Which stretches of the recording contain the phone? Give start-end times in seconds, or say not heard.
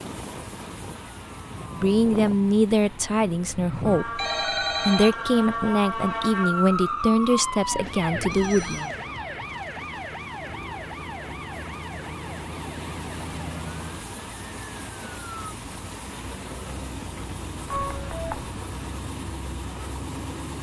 4.2-5.2, 8.3-8.9, 17.6-18.6.